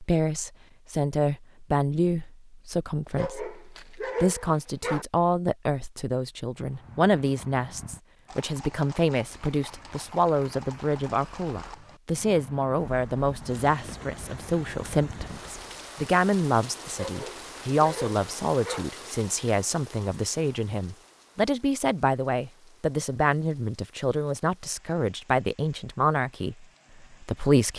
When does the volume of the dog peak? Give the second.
4 s.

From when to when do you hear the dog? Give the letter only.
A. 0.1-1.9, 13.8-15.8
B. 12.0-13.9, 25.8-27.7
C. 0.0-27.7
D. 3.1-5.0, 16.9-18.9
D.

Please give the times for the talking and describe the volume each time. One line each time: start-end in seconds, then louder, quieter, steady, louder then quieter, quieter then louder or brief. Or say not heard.
0.0-27.7 steady.